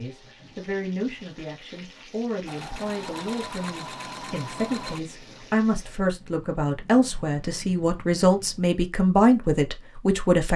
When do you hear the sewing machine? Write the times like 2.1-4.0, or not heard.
2.5-5.0.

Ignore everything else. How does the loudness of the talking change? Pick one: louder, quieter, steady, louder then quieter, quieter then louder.
louder.